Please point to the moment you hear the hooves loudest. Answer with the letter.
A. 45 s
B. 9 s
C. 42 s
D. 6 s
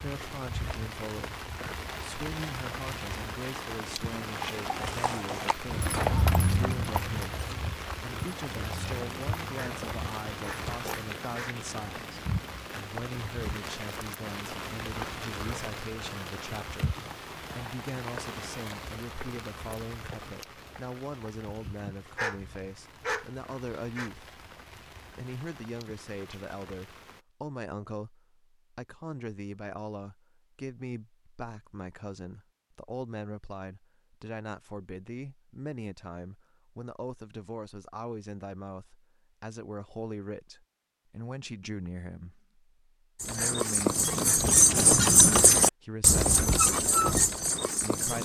A.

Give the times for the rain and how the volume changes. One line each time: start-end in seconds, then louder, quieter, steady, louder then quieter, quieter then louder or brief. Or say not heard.
0.0-27.2 quieter.